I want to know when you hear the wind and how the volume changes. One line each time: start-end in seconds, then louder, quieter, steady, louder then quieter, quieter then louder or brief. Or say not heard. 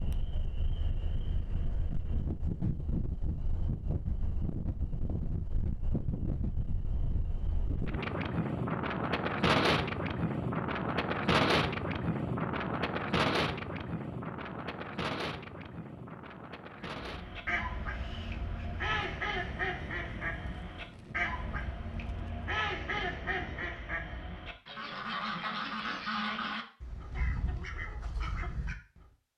0.0-23.7 louder then quieter.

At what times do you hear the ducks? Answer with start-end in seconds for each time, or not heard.
17.0-29.1.